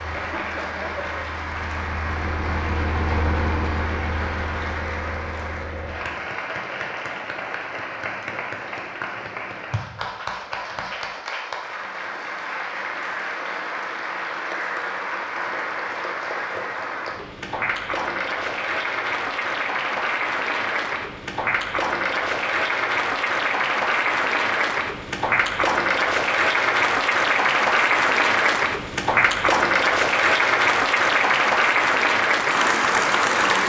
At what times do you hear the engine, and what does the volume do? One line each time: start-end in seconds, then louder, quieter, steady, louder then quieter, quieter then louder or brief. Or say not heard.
0.0-6.1 louder then quieter.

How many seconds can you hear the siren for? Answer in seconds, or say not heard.
not heard.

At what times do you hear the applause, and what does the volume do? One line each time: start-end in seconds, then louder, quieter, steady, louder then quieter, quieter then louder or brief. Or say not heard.
0.0-33.6 louder.